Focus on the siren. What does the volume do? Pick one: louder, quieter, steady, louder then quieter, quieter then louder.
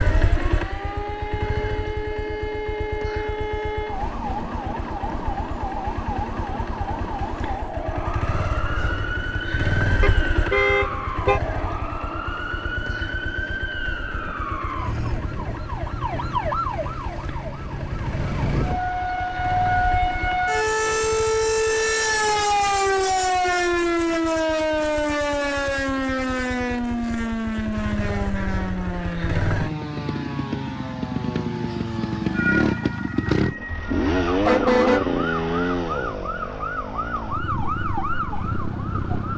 louder then quieter.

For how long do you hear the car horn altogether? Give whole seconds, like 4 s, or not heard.
3 s.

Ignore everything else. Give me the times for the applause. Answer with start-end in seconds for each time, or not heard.
not heard.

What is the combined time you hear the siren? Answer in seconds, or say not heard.
39 s.